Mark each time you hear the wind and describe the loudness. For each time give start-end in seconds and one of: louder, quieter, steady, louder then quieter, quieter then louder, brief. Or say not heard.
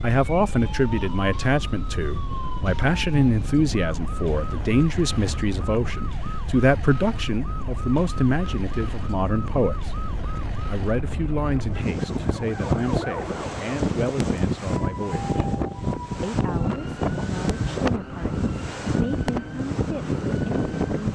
0.1-21.1 louder.